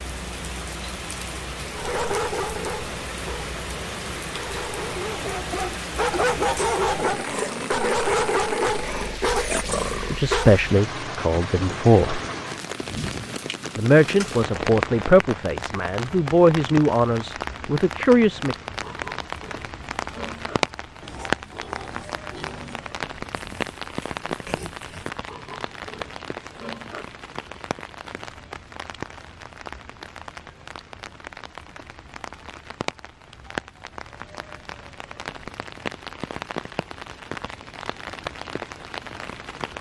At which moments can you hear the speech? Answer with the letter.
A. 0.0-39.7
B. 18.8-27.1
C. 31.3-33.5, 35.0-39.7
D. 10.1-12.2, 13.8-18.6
D.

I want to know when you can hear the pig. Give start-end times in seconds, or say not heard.
18.8-27.1.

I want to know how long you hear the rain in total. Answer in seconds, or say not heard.
40 s.